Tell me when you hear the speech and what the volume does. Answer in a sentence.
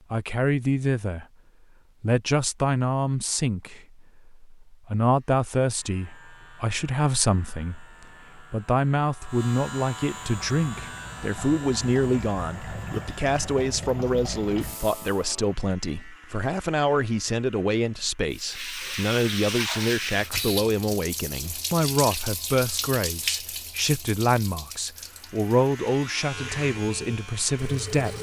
The speech can be heard briefly from 0.1 to 1.2 s; and from 2.0 to 28.1 s, at a steady volume.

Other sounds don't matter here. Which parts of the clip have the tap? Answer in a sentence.
The tap can be heard from 10.2 to 15.2 s and from 18.3 to 28.1 s.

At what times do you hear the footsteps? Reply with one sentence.
The footsteps can't be heard in this clip.